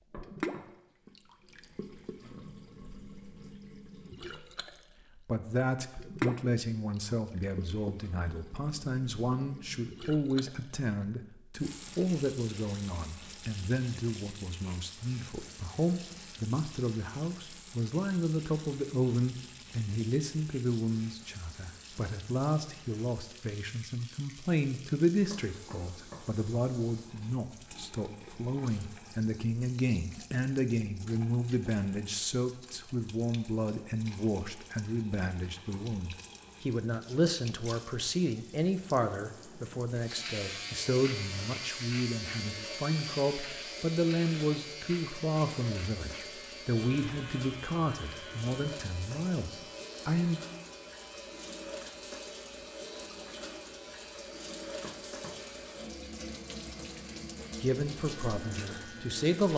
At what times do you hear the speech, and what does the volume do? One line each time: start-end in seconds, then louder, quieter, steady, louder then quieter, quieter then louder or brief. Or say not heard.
5.2-50.4 steady
57.6-59.5 brief.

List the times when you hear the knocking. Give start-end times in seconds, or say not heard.
0.1-0.7, 25.3-26.2, 54.8-55.4.